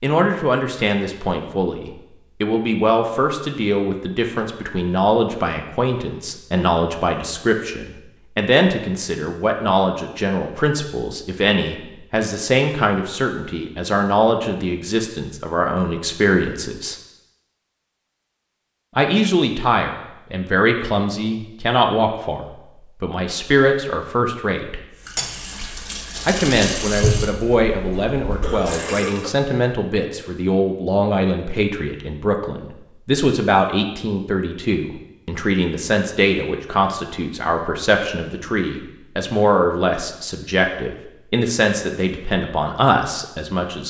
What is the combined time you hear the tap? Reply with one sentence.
The tap can be heard for 4 seconds in total.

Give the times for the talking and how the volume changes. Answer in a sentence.
The talking can be heard from 0.0 to 16.9 s, at a steady volume; from 18.9 to 24.9 s, getting quieter then louder; and from 26.2 to 43.8 s, at a steady volume.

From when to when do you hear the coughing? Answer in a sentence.
The coughing can be heard from 28.4 to 29.4 s.